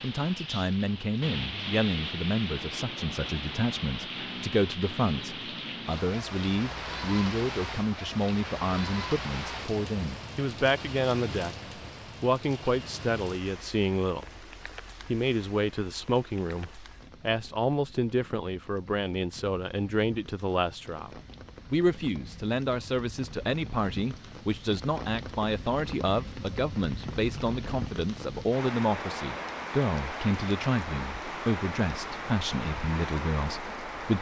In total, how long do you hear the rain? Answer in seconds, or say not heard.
34 s.